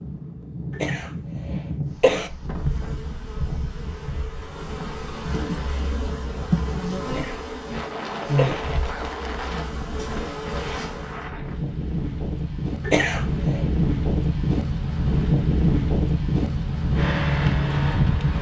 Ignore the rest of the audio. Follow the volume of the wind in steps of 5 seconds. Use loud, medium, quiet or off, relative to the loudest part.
quiet, quiet, medium, loud.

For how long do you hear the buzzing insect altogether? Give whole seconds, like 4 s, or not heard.
9 s.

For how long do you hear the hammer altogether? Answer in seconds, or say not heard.
not heard.